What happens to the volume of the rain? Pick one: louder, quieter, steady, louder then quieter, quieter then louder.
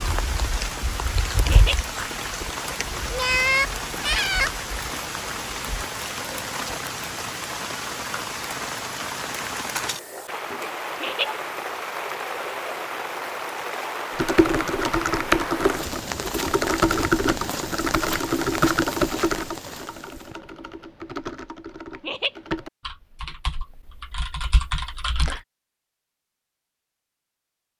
steady.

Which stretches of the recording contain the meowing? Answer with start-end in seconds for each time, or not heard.
3.1-4.5.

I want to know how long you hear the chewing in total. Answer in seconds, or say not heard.
not heard.